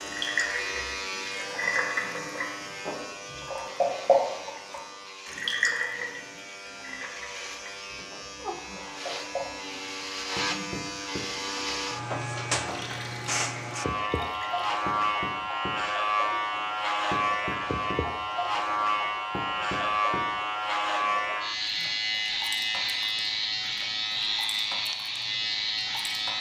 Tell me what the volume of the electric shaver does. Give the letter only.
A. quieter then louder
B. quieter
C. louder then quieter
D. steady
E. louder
E.